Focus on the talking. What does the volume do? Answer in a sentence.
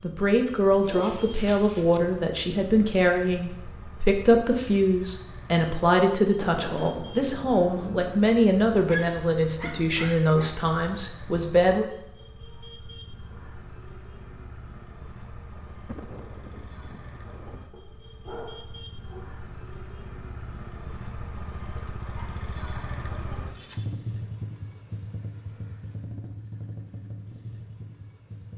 The loudness of the talking stays about the same.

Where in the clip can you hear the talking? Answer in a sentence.
You can hear the talking from 0.0 to 11.8 s.